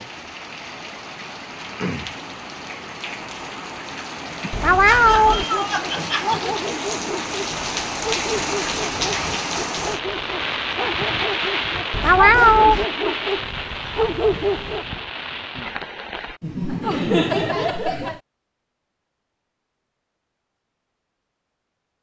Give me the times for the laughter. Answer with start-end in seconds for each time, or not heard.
4.4-6.5, 16.4-18.2.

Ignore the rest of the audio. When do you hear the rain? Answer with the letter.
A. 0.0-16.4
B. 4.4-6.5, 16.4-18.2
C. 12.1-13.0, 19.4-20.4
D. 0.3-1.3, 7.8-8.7
A.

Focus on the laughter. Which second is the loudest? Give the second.
17 s.